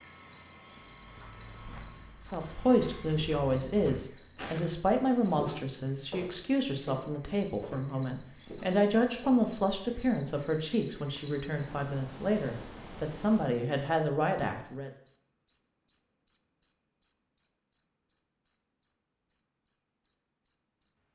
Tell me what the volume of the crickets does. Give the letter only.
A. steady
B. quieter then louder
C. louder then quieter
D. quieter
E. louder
C.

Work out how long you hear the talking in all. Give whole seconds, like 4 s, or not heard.
13 s.